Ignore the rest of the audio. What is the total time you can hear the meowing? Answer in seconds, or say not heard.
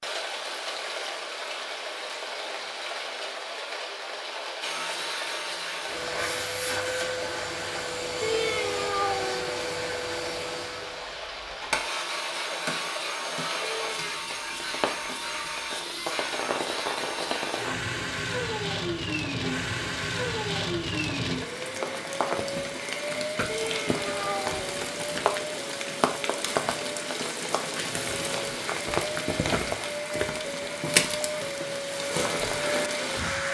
3 s.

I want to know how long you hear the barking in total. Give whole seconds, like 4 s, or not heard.
not heard.